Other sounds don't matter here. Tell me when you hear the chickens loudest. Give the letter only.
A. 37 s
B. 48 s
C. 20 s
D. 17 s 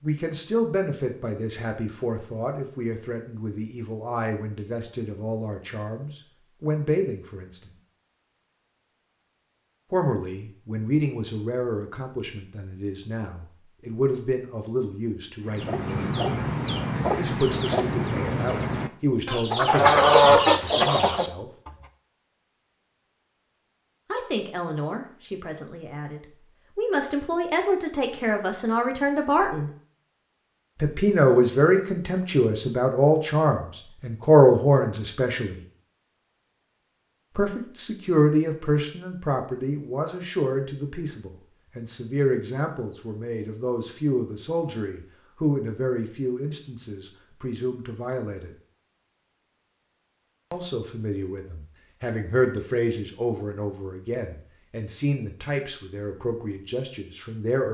C.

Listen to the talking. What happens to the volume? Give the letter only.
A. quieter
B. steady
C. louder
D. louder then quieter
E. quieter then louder
D.